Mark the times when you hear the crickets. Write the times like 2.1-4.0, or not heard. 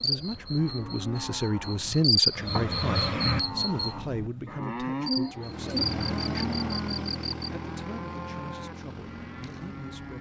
0.0-7.5.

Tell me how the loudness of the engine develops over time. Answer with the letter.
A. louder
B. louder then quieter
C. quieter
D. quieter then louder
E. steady
C.